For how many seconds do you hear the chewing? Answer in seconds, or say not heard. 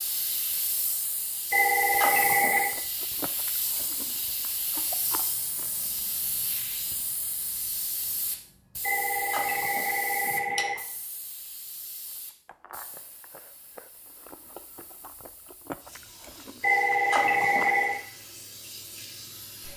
9 s.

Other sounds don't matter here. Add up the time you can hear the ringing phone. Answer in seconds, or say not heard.
5 s.